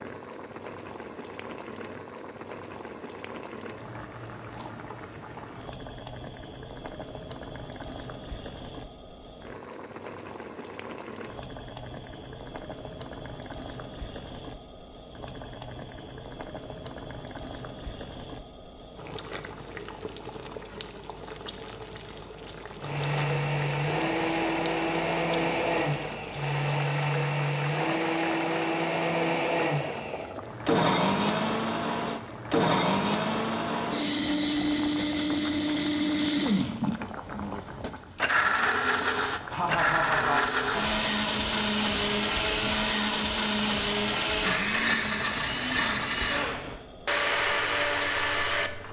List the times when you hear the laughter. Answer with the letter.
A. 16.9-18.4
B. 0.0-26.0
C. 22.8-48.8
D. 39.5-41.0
D.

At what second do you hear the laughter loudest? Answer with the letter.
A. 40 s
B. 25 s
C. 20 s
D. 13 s
A.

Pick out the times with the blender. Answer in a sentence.
The blender can be heard from 22.8 to 48.8 s.